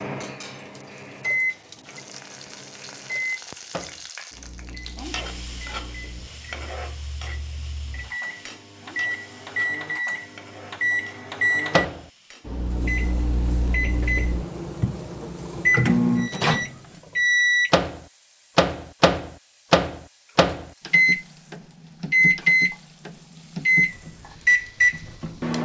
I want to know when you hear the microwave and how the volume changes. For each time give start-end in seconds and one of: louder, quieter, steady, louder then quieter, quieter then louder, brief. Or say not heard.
0.0-25.6 louder.